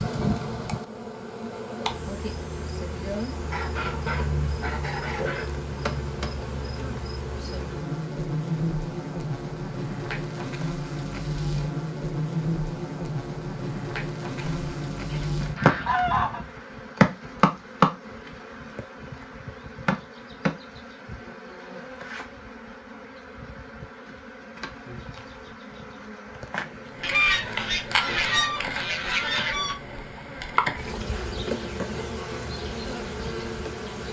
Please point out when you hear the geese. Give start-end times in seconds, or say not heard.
3.5-5.5, 14.4-16.4, 27.0-29.8.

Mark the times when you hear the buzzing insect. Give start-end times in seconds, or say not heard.
0.0-34.0.